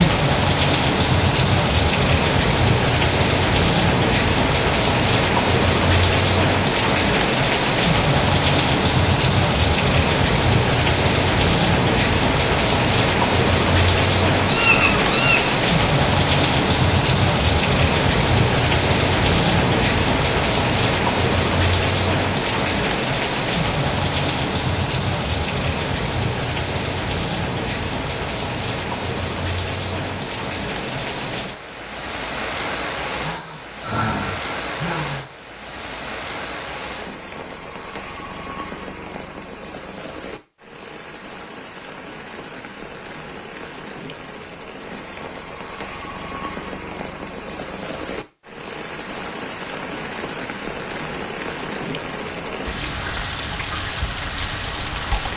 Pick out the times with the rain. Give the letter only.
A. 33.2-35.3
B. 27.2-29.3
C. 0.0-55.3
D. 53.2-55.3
C.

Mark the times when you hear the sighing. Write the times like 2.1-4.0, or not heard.
33.2-35.3.